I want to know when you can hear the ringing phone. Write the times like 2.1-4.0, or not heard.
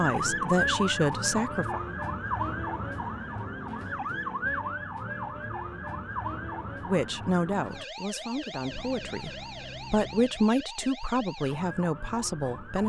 not heard.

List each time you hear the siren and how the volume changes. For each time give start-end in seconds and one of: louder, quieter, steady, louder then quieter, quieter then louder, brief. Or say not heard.
0.0-12.8 quieter.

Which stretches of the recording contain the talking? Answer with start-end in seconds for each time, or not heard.
0.0-1.8, 6.8-12.8.